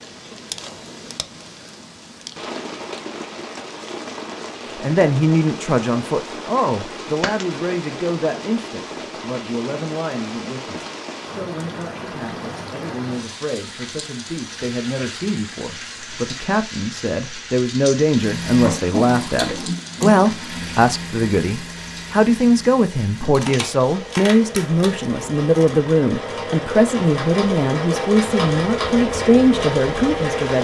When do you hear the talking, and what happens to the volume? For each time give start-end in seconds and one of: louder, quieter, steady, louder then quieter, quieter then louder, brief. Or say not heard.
4.8-30.5 quieter then louder.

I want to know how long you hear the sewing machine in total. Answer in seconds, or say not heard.
12 s.